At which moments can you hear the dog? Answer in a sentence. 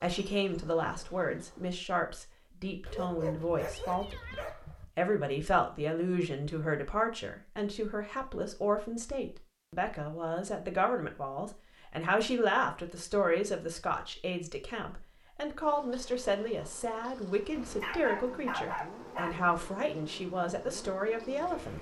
You can hear the dog from 2.9 to 4.8 s and from 17.8 to 19.4 s.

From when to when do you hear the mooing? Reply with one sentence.
The mooing can't be heard in this clip.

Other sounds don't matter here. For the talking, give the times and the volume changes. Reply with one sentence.
You can hear the talking from 0.0 to 21.7 s, at a steady volume.